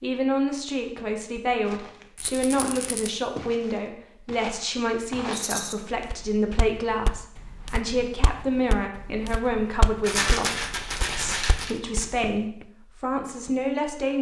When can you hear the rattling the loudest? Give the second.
10 s.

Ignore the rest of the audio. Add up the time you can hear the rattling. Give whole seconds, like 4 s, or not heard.
3 s.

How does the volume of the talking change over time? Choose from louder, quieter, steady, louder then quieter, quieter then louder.
steady.